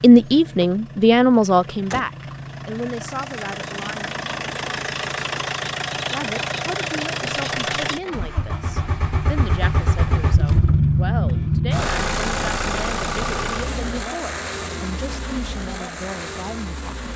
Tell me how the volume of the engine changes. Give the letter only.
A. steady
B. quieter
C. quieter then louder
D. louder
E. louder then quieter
E.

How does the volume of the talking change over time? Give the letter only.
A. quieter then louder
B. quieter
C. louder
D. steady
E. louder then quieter
B.